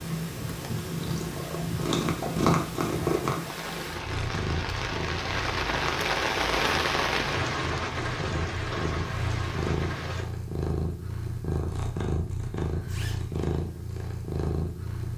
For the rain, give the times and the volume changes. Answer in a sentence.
You can hear the rain from 0.0 to 10.2 s, getting louder then quieter.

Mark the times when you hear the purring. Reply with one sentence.
You can hear the purring from 0.0 to 15.1 s.